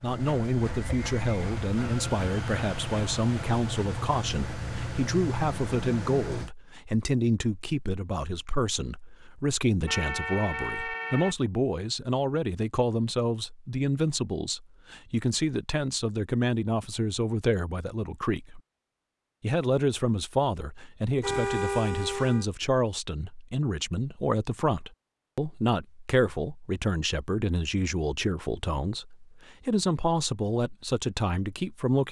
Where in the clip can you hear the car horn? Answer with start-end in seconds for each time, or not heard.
9.8-11.3, 21.2-22.4.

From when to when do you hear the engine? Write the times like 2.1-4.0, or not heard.
0.0-6.5.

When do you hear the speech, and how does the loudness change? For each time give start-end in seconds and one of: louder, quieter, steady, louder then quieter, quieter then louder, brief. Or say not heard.
0.0-18.6 steady
19.4-32.0 steady.